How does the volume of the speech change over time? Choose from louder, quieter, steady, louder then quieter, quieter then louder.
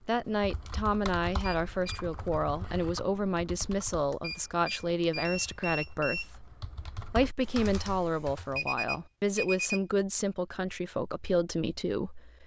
steady.